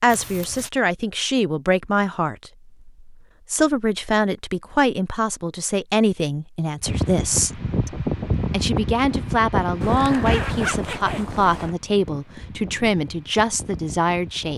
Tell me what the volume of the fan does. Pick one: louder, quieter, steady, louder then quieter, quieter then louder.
quieter.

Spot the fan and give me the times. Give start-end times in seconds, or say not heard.
6.8-14.5.